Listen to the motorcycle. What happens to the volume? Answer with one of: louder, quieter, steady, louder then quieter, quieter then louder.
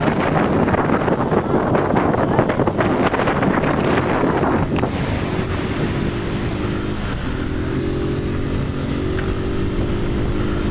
louder.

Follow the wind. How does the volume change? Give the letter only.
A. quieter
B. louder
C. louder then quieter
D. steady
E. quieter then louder
A.